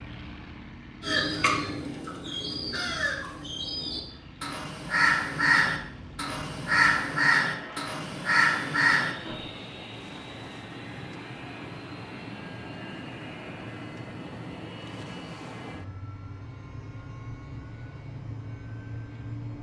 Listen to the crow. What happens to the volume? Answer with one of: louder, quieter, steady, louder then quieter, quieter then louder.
louder.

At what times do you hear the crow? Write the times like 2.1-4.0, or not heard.
1.0-9.3.